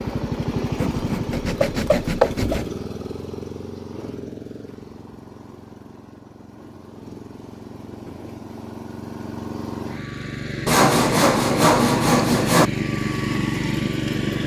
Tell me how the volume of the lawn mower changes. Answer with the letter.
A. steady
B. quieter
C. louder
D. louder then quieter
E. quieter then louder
E.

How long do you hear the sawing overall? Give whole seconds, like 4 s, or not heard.
4 s.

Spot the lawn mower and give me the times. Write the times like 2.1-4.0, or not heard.
0.0-14.4.